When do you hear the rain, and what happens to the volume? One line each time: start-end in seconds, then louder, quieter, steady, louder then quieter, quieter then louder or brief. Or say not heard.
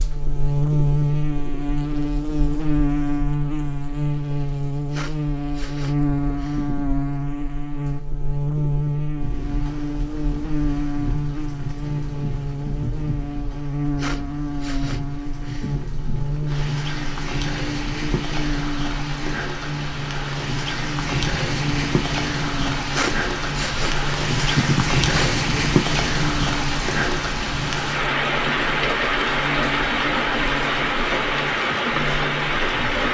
9.2-33.1 louder.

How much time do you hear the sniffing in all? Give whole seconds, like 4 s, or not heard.
6 s.